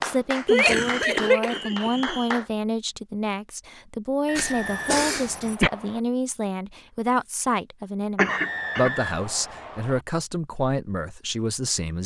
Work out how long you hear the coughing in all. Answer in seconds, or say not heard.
4 s.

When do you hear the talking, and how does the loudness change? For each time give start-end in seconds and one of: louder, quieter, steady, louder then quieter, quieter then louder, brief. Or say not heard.
0.0-12.0 steady.